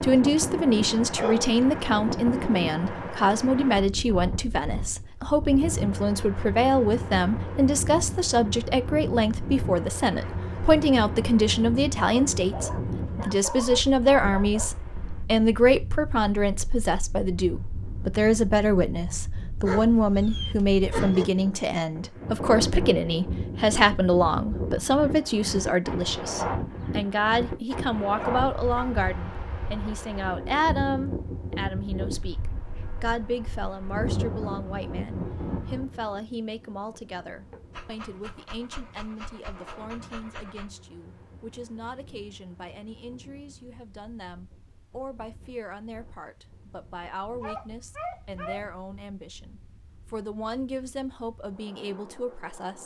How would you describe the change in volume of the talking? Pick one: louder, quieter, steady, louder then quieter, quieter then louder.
quieter.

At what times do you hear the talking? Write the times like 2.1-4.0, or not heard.
0.0-52.8.